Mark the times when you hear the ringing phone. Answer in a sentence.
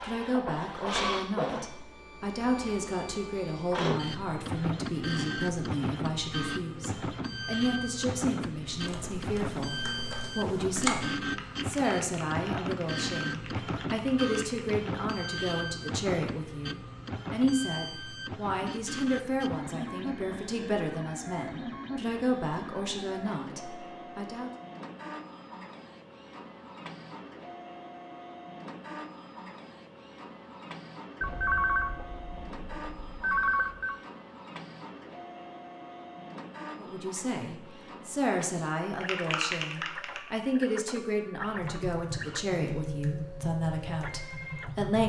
You can hear the ringing phone from 31.2 to 34.0 s.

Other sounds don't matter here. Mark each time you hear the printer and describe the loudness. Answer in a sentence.
The printer can be heard from 0.0 to 45.0 s, getting quieter.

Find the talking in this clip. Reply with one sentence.
You can hear the talking from 0.0 to 24.5 s and from 36.8 to 45.0 s.